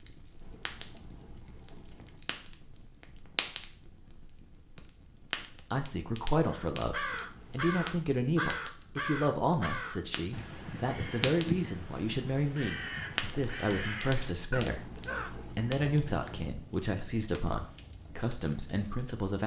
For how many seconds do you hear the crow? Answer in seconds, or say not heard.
9 s.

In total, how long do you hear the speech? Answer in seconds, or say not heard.
14 s.